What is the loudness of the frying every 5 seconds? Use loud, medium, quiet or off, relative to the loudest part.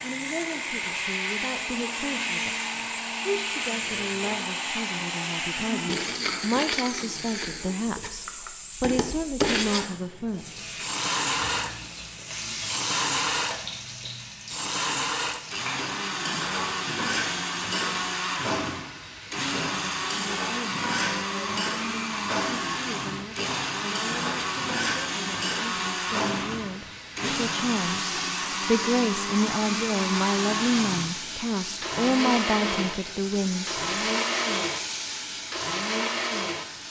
medium, medium, loud, loud, loud, loud, loud, loud.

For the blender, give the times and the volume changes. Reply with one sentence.
The blender can be heard from 0.0 to 36.8 s, at a steady volume.